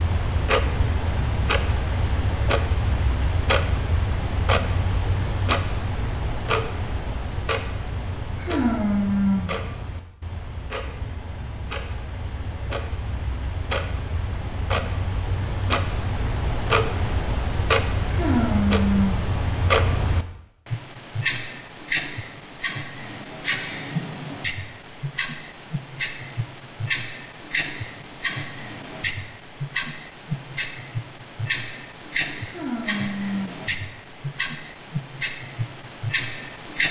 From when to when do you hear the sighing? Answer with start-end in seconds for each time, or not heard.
8.3-9.6, 18.0-19.3, 32.4-33.6.